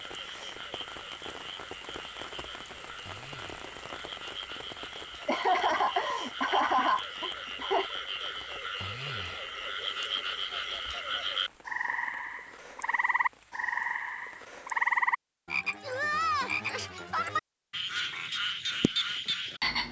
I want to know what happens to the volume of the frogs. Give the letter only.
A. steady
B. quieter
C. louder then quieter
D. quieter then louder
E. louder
E.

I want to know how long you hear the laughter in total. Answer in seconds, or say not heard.
3 s.